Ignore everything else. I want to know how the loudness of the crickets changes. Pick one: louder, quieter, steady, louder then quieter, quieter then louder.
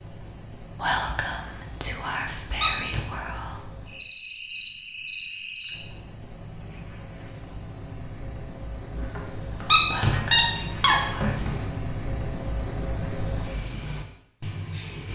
louder.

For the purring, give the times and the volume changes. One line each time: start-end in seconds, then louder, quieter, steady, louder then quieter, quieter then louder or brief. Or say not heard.
not heard.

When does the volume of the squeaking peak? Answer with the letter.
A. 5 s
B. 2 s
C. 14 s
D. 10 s
D.